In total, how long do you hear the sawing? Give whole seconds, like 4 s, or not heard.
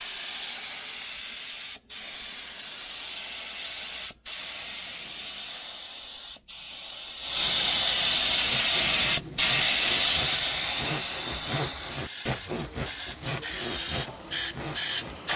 7 s.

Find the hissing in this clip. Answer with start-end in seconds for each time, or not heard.
0.0-15.3.